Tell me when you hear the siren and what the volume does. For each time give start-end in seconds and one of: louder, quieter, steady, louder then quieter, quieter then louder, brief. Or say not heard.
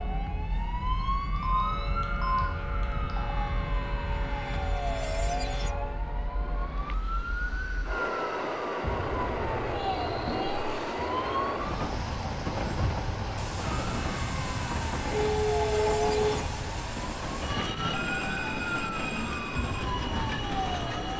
0.0-21.1 steady.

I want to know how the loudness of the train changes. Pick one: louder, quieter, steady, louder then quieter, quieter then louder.
louder.